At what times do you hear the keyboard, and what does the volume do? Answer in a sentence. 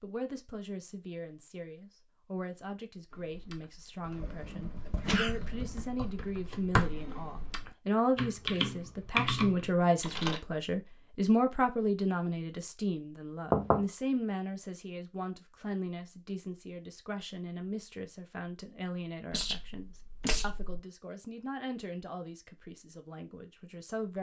The keyboard can be heard from 3.1 to 10.4 s, getting louder.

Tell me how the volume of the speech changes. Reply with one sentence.
The loudness of the speech goes up, then down.